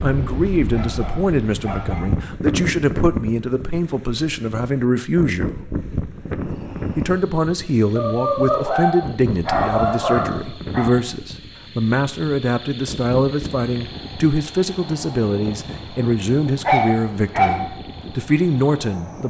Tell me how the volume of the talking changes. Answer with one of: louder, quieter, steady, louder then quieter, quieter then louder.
steady.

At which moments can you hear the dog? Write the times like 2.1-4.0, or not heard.
0.7-2.1, 8.0-10.9, 16.6-17.6.